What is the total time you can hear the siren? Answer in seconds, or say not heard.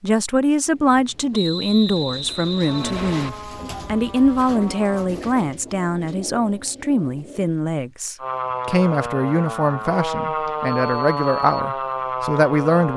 7 s.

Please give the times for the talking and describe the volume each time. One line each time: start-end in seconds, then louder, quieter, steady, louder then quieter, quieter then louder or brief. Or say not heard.
0.0-12.9 steady.